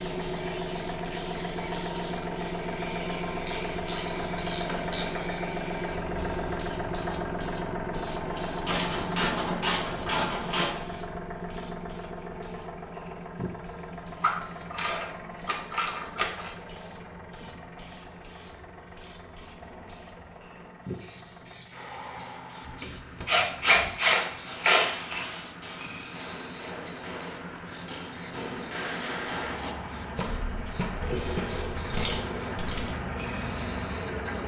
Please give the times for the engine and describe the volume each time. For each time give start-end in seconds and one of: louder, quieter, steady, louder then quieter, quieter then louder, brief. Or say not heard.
0.0-34.4 quieter then louder.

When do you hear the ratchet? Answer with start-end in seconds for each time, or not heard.
3.5-5.3, 8.7-10.8, 14.2-16.5, 23.2-25.2, 31.0-33.0.